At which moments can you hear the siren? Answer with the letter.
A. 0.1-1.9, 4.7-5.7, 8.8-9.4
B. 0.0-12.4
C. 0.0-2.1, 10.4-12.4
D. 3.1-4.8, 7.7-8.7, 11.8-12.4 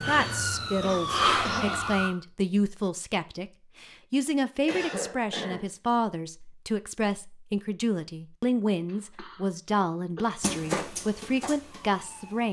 C.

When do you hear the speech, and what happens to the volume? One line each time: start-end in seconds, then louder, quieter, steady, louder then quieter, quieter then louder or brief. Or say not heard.
0.0-12.4 steady.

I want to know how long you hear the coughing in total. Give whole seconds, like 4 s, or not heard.
3 s.